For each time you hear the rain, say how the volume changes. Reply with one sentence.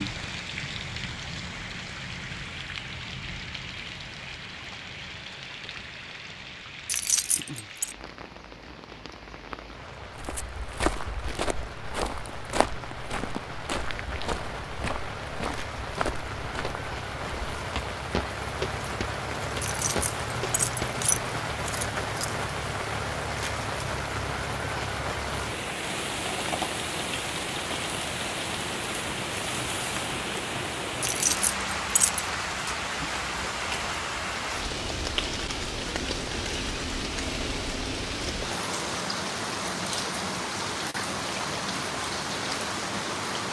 The rain can be heard from 0.0 to 43.4 s, getting louder.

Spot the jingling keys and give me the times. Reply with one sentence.
The jingling keys can be heard from 6.8 to 8.0 s, from 19.6 to 22.3 s and from 31.0 to 32.2 s.